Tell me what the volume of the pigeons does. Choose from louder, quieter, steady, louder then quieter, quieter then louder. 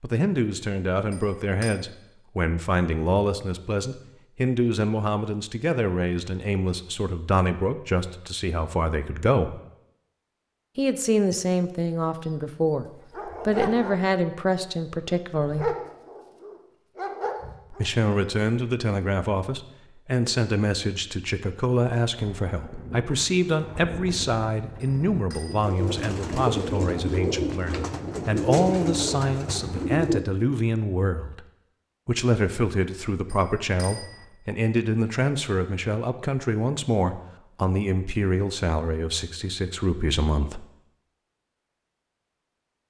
louder.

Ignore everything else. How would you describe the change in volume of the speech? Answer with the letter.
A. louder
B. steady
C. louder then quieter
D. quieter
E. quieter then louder
B.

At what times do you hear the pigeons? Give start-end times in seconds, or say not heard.
22.1-30.2.